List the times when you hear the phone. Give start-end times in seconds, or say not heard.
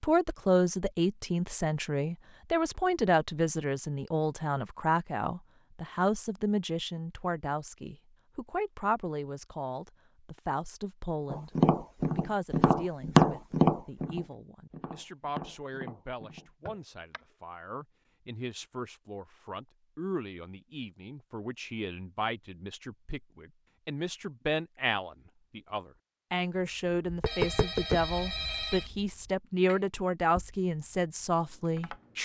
27.2-28.9.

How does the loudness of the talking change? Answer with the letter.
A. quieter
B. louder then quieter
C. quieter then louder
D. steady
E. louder
C.